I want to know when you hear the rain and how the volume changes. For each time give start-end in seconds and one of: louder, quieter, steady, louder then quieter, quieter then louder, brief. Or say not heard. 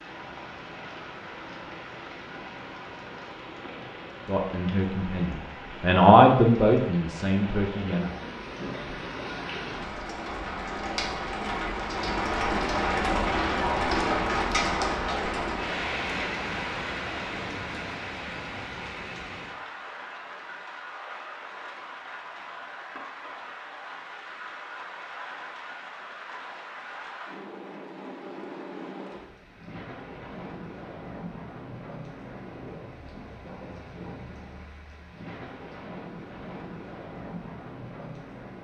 0.0-38.5 louder then quieter.